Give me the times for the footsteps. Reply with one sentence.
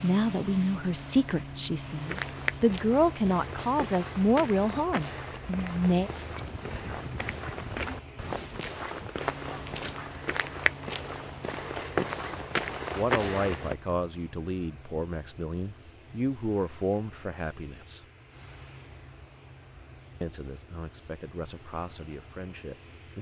The footsteps can be heard from 2.0 to 13.8 s.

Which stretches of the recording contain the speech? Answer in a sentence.
The speech can be heard from 0.0 to 6.1 s, from 12.9 to 18.1 s and from 20.2 to 23.1 s.